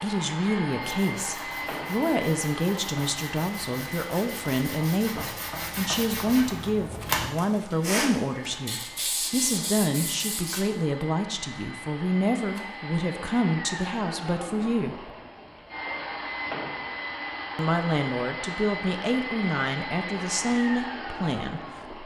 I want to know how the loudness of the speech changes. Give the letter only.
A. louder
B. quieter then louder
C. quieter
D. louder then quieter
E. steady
E.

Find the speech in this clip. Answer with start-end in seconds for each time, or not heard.
0.0-15.1, 17.6-21.9.